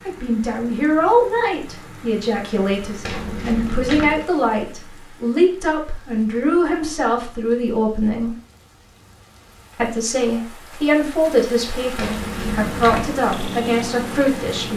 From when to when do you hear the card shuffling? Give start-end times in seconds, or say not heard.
3.0-4.2, 11.9-13.2.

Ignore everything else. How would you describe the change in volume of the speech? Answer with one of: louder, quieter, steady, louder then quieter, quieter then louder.
steady.